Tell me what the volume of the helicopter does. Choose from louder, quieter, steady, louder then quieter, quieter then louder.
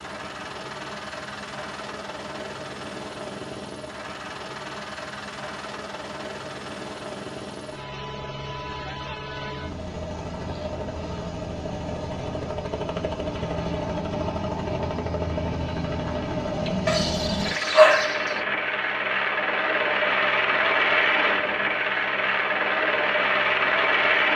louder.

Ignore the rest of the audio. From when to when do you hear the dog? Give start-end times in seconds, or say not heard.
16.9-18.4.